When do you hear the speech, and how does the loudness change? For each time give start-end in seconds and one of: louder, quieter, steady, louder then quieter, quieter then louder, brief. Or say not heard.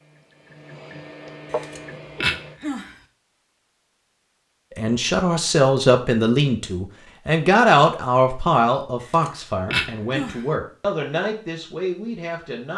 4.8-12.7 quieter.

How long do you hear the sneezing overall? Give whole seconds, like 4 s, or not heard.
3 s.